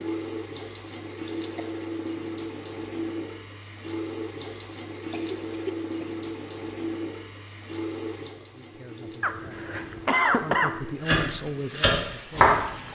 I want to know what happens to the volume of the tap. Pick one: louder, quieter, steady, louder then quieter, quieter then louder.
quieter.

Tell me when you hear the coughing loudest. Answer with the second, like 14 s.
10 s.